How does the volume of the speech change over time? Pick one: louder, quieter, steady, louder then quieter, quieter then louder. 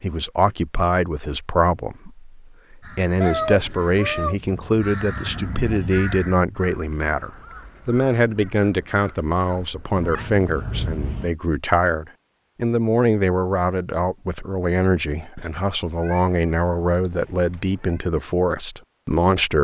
steady.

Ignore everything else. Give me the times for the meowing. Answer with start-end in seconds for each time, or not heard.
3.2-4.3, 9.9-11.3, 15.3-18.1.